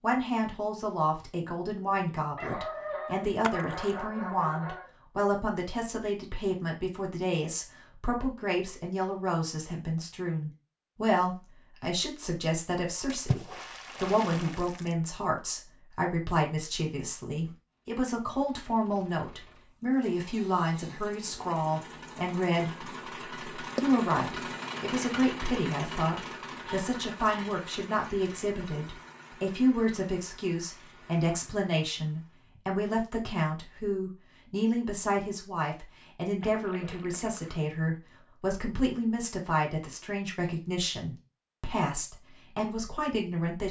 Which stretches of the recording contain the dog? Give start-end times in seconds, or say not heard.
2.4-4.9, 26.6-27.6.